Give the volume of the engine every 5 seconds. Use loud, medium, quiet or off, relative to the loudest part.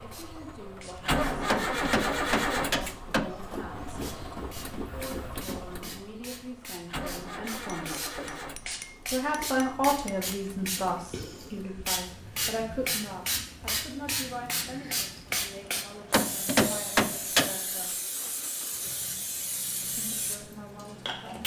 loud, medium, quiet, quiet, quiet.